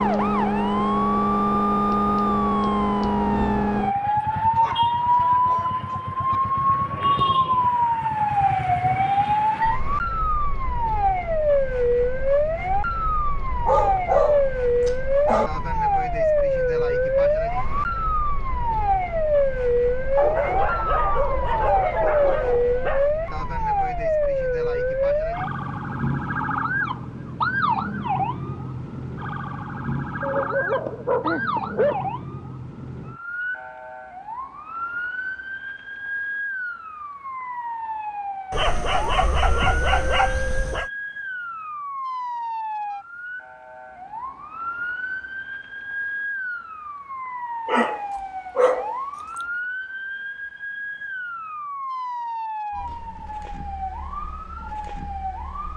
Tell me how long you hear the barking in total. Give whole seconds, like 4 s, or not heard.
13 s.